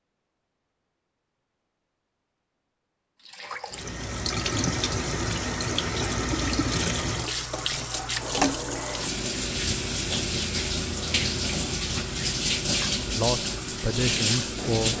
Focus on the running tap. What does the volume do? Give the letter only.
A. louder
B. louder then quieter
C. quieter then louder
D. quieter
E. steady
E.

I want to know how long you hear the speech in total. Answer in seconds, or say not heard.
2 s.